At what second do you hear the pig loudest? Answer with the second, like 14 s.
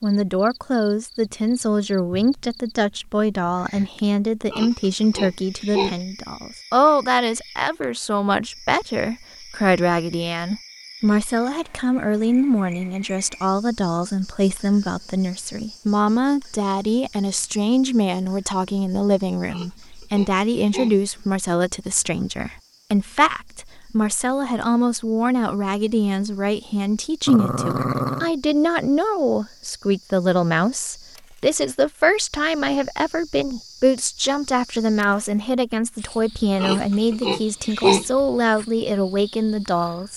38 s.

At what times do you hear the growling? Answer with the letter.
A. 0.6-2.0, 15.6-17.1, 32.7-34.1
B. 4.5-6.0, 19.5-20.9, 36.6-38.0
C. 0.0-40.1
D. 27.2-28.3
D.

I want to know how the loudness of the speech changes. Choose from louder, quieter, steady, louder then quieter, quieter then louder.
steady.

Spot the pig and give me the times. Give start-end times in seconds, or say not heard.
4.5-6.0, 19.5-20.9, 36.6-38.0.